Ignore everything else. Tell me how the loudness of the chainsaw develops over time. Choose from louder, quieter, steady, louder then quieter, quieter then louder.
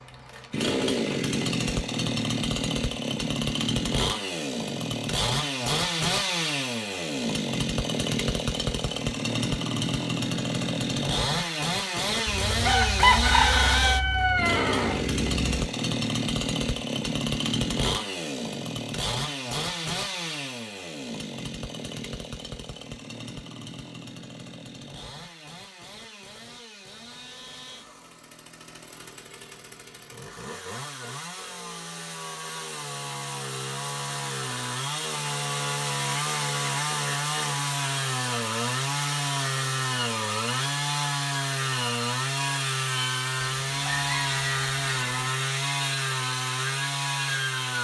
quieter then louder.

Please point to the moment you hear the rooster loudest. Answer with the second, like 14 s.
13 s.